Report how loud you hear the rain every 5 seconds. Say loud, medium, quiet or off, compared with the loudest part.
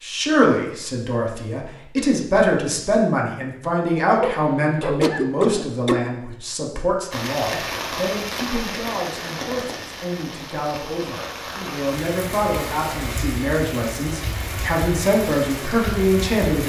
off, loud, loud, loud.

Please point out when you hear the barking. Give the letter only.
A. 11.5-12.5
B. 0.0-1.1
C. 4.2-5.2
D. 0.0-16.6
C.